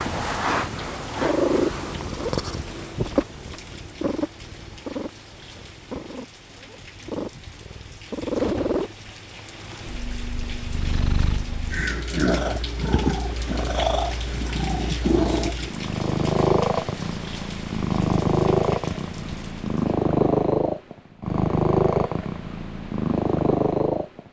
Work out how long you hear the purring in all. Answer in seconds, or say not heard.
24 s.